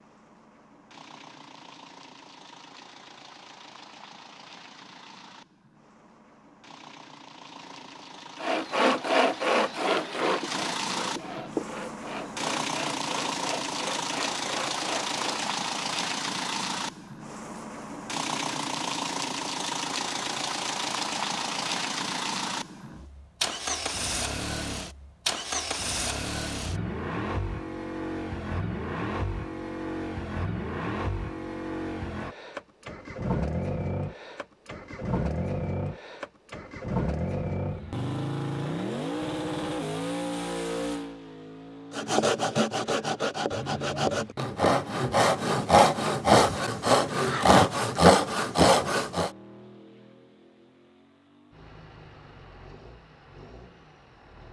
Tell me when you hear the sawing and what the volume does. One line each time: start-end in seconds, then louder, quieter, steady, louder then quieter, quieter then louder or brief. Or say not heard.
8.3-15.4 quieter
41.9-49.3 louder.